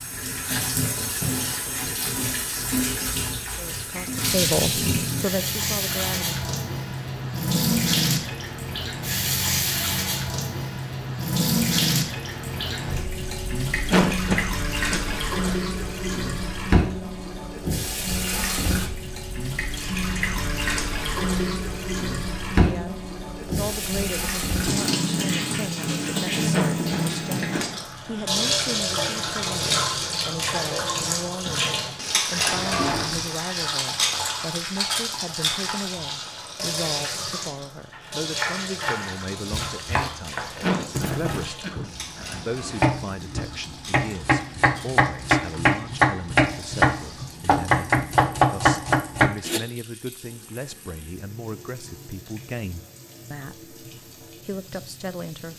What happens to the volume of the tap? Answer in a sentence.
The loudness of the tap goes down.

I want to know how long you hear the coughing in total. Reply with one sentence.
You can hear the coughing for 5 seconds altogether.